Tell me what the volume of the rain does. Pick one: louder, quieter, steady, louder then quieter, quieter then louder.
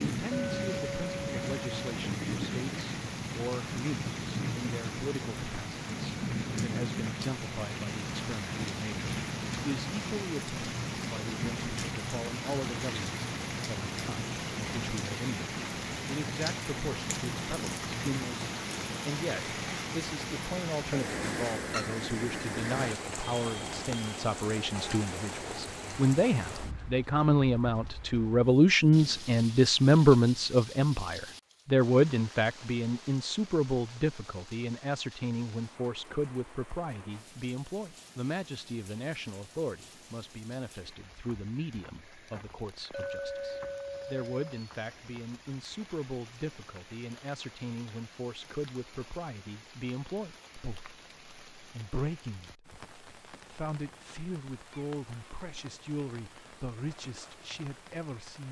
quieter.